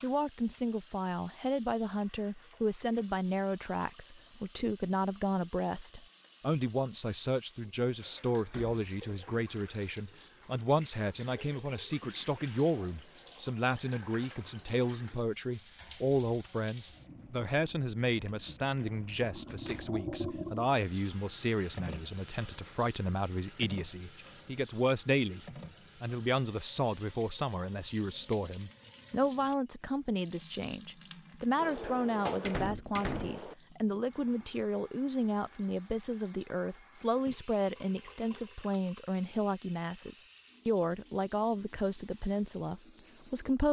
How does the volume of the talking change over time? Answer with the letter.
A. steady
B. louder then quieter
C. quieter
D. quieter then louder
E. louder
A.